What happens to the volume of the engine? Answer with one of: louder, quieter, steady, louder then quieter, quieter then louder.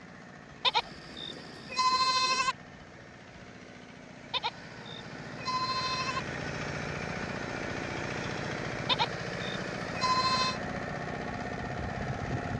louder.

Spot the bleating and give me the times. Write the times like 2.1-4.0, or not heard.
0.6-2.5, 4.3-6.2, 8.8-10.6.